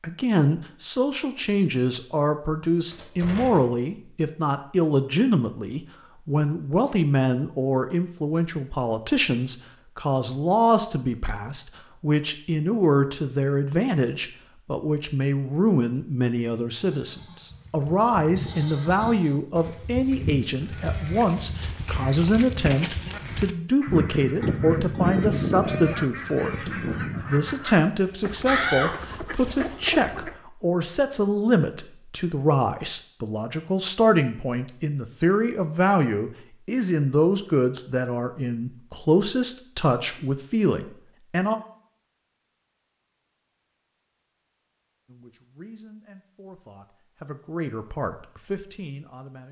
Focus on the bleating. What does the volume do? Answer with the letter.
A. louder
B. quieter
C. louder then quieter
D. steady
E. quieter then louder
A.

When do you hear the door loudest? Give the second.
29 s.